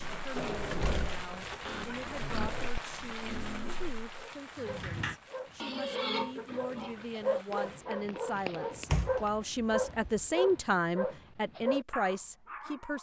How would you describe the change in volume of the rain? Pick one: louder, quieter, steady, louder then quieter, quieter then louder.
quieter then louder.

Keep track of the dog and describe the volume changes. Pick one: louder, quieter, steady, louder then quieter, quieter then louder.
louder.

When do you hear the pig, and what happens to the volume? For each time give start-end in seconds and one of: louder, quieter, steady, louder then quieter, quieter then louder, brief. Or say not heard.
0.0-4.0 quieter then louder
5.5-7.5 brief.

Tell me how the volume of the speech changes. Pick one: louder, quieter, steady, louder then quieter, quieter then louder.
louder.